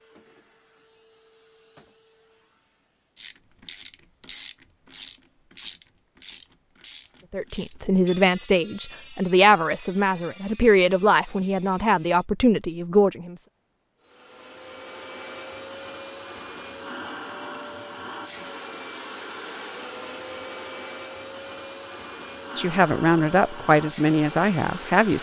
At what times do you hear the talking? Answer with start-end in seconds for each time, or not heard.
7.3-13.3, 22.6-25.1.